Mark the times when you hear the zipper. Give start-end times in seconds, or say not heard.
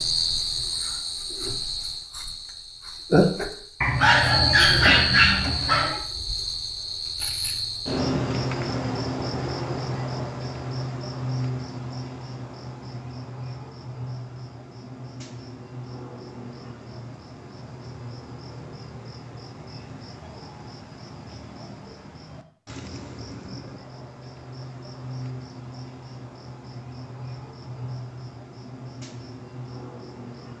not heard.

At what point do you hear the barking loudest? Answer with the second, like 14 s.
5 s.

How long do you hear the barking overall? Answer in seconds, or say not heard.
2 s.